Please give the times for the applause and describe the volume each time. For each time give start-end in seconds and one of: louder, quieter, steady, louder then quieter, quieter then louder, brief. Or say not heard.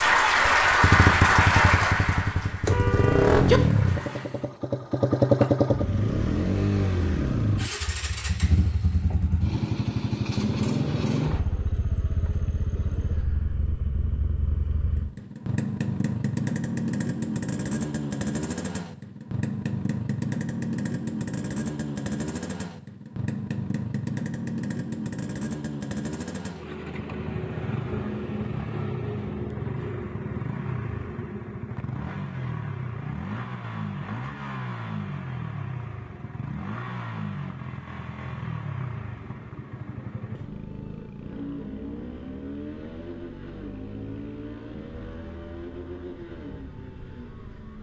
0.0-4.3 quieter.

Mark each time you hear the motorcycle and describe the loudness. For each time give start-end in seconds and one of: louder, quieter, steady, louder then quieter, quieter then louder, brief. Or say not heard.
0.0-47.7 quieter.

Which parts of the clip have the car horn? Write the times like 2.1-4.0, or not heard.
2.6-3.6.